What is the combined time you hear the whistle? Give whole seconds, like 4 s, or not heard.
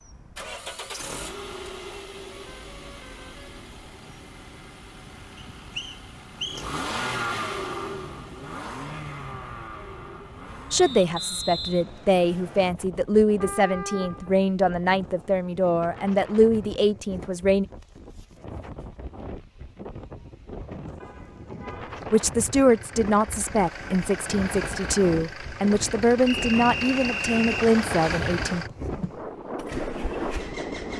5 s.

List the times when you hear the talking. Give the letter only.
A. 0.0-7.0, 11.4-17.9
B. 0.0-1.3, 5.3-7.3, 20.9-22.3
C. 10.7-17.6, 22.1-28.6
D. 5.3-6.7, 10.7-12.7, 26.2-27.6
C.